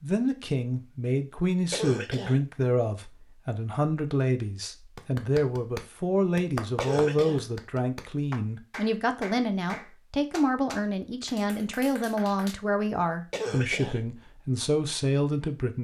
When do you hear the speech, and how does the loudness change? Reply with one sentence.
The speech can be heard from 0.0 to 15.8 s, at a steady volume.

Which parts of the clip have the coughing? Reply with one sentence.
The coughing can be heard from 1.7 to 2.4 s, from 6.8 to 7.5 s and from 13.3 to 14.0 s.